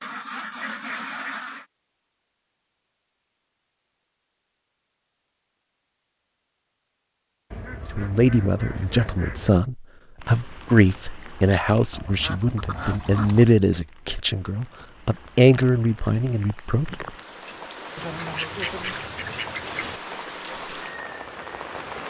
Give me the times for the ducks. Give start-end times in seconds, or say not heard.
0.0-1.6, 7.5-9.5, 11.9-13.5, 17.9-20.0.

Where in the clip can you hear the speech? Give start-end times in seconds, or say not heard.
7.9-17.1.